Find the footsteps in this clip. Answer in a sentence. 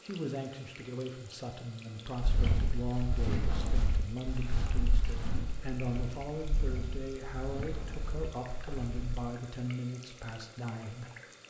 You can hear the footsteps from 2.1 to 9.2 s.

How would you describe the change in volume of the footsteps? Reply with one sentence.
The loudness of the footsteps goes down.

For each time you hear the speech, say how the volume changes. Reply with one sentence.
You can hear the speech from 0.0 to 11.4 s, at a steady volume.